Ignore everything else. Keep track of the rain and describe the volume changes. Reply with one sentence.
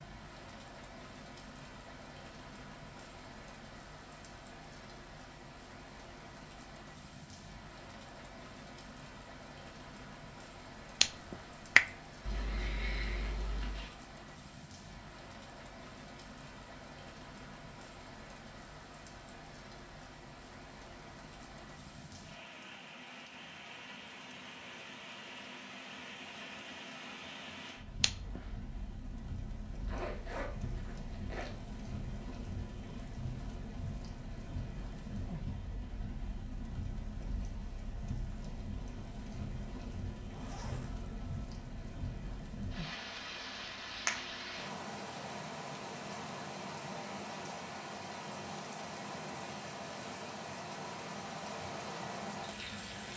The volume of the rain goes up.